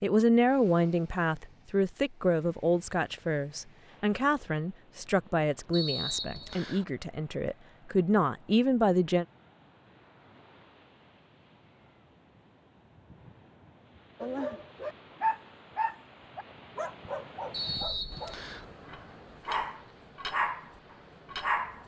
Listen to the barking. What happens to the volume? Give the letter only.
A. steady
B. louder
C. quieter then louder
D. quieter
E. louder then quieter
C.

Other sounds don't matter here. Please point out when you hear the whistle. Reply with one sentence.
The whistle can be heard from 5.7 to 6.8 s and from 17.5 to 18.6 s.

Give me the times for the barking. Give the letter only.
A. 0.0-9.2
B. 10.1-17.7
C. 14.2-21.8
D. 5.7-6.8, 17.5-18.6
C.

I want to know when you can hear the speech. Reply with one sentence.
You can hear the speech from 0.0 to 9.2 s.